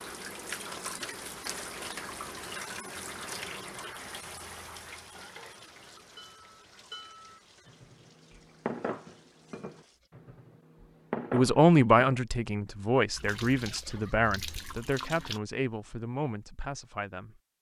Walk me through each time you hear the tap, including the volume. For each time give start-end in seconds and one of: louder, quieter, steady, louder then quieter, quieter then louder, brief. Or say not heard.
0.0-10.1 quieter
13.1-15.4 brief.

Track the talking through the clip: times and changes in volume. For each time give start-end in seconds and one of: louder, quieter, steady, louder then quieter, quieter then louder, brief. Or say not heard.
11.3-17.4 quieter.